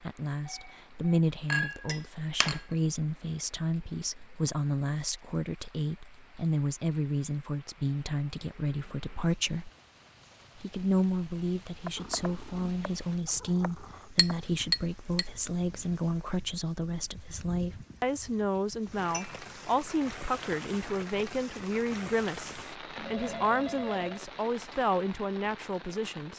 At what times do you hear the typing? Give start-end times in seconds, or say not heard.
not heard.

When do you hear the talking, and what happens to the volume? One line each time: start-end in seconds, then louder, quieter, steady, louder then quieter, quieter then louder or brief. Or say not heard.
0.0-9.7 steady
10.6-26.3 steady.